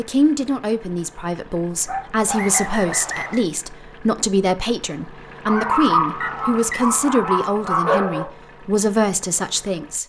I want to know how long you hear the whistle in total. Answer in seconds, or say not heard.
2 s.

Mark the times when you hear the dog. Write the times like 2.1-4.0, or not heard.
1.9-3.3, 5.5-8.2.